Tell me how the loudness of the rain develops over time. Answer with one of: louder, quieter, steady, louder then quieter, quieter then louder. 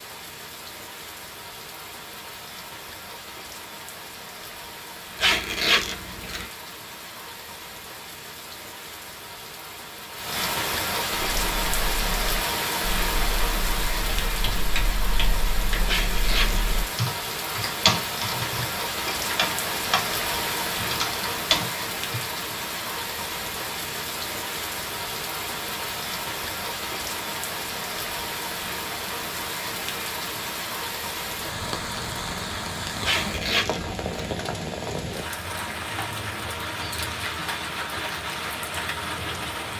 louder.